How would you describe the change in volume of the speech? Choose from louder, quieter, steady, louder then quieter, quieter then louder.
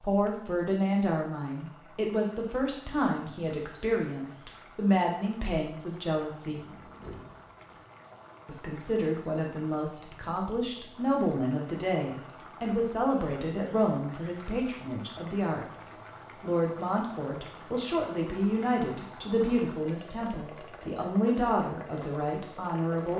steady.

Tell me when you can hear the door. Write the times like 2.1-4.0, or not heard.
6.5-7.8.